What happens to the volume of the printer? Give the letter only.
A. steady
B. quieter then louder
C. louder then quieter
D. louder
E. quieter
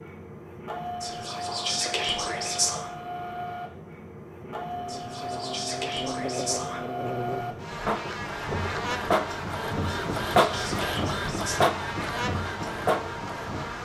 D.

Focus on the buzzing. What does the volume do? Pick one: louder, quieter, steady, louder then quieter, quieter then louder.
steady.